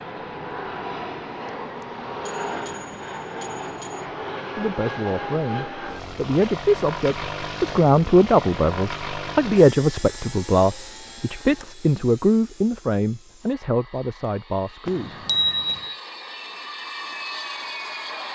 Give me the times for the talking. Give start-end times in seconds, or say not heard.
4.5-15.2.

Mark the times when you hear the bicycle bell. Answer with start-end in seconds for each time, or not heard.
1.4-4.0, 14.8-15.9.